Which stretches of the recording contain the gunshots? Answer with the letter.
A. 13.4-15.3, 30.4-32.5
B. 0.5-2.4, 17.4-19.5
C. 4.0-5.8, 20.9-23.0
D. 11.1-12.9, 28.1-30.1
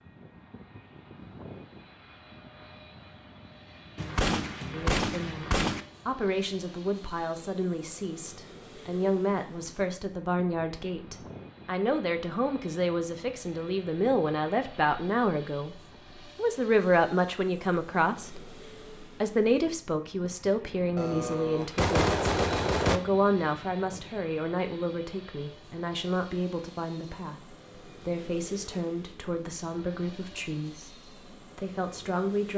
C.